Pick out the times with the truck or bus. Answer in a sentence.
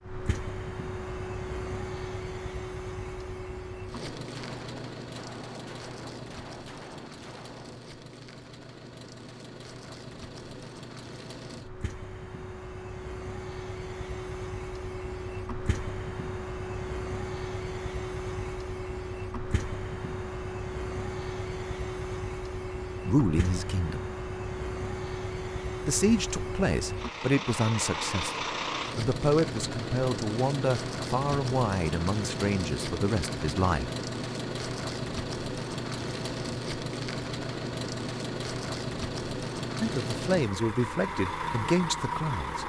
You can hear the truck or bus from 0.0 to 42.6 s.